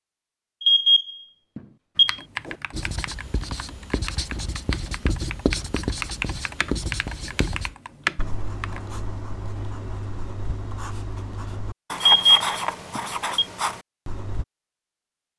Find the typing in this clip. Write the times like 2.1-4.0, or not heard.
1.9-8.8.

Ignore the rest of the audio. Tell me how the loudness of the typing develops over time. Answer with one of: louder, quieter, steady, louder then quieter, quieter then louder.
louder.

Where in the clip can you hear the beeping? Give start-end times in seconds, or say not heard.
0.6-2.1, 12.0-13.4.